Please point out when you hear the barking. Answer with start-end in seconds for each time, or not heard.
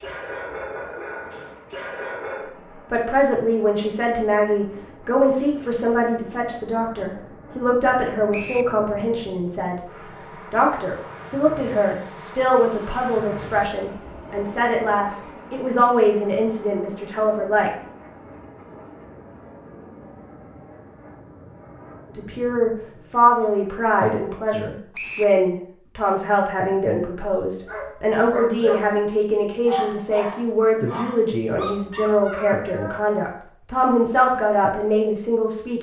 0.0-2.5, 27.6-33.0.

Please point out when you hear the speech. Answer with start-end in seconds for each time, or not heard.
2.9-9.8, 10.5-17.7, 22.1-35.7.